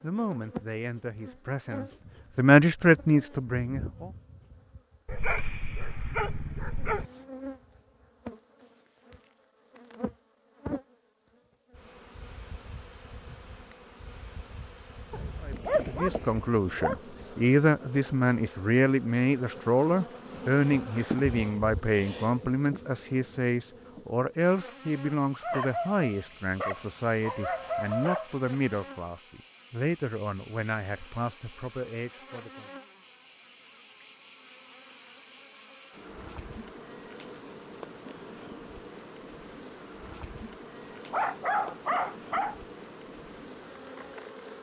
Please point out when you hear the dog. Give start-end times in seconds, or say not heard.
5.0-7.0, 15.1-17.0, 25.4-28.3, 40.9-42.5.